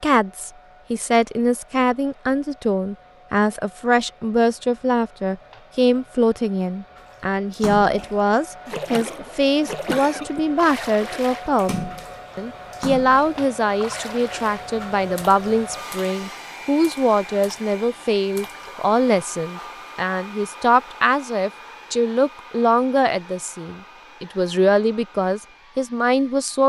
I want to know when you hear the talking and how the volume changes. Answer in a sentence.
You can hear the talking from 0.0 to 26.6 s, at a steady volume.